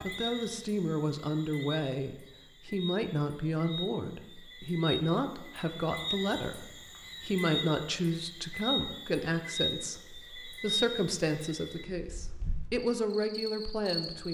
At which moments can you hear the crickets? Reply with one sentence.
The crickets can be heard from 0.0 to 14.2 s.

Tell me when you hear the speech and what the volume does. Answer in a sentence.
You can hear the speech from 0.0 to 14.2 s, at a steady volume.